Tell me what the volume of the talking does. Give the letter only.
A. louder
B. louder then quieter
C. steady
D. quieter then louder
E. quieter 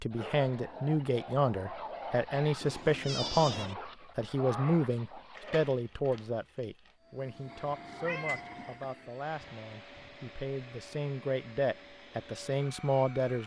D.